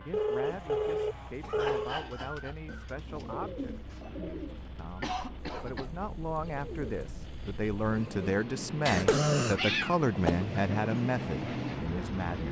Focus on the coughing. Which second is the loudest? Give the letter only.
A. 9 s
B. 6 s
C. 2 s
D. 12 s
A.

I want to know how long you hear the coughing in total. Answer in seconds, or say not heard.
5 s.